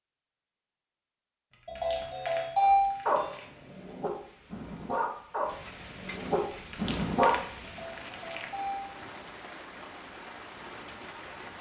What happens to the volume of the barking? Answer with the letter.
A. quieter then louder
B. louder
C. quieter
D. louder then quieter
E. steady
A.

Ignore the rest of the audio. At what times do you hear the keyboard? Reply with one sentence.
The keyboard can't be heard in this clip.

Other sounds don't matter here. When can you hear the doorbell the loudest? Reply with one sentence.
The loudest moment of the doorbell is at 3 seconds.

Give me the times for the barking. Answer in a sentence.
You can hear the barking from 2.6 to 7.3 s.